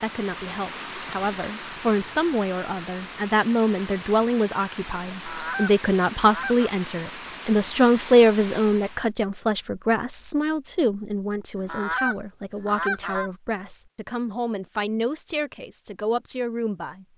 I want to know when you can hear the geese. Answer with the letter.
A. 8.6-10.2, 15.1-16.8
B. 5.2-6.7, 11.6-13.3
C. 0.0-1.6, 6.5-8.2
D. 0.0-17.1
B.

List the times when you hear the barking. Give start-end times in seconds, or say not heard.
not heard.